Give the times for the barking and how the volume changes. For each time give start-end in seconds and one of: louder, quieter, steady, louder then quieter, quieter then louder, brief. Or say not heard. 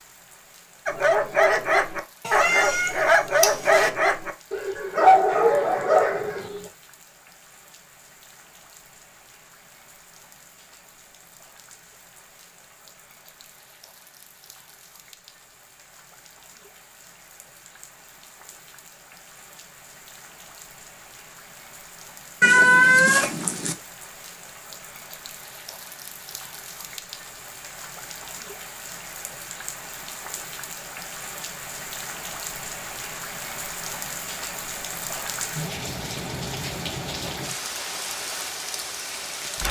0.8-6.7 steady.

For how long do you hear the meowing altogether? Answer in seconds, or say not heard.
3 s.